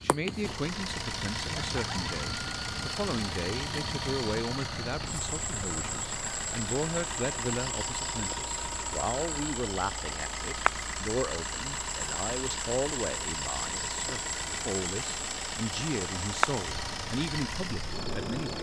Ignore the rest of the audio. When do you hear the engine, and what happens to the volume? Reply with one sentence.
You can hear the engine from 0.2 to 18.5 s, at a steady volume.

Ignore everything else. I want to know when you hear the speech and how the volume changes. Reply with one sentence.
You can hear the speech from 0.0 to 18.5 s, at a steady volume.